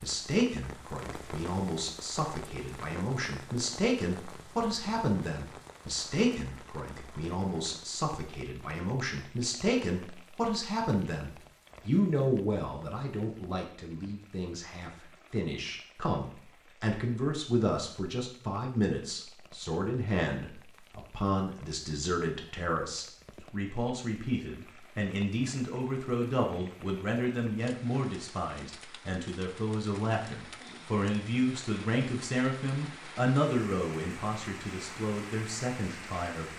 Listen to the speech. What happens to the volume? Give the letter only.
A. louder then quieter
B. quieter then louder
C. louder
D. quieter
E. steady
E.